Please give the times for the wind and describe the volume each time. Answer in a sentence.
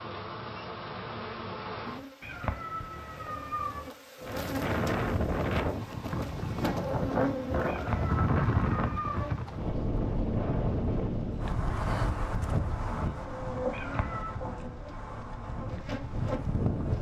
The wind can be heard from 4.2 to 16.9 s, getting quieter.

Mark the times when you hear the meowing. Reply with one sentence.
You can hear the meowing from 2.2 to 3.9 s, from 7.7 to 9.3 s and from 13.7 to 14.4 s.